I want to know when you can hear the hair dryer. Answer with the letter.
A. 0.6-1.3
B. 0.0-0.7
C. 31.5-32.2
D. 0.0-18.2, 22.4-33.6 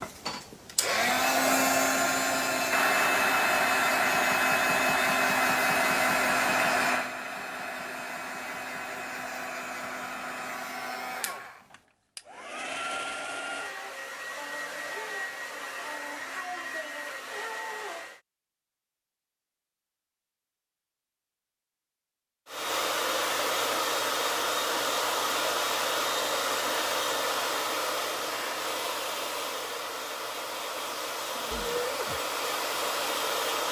D.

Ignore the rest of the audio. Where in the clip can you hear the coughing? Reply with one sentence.
You can hear the coughing from 31.5 to 32.2 s.